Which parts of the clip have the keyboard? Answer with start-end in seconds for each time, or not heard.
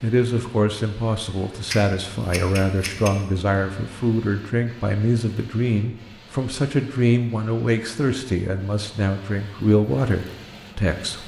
not heard.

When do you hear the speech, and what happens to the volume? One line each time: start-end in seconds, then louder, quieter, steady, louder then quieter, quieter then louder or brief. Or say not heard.
0.0-11.2 steady.